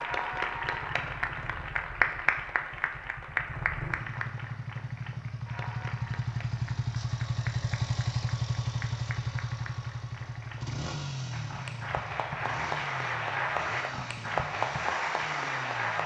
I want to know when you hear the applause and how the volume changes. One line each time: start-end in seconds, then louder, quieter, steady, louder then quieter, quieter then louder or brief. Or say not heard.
0.0-16.0 quieter then louder.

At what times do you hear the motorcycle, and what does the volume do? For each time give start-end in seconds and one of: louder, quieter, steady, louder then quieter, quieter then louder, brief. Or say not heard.
0.0-16.0 louder then quieter.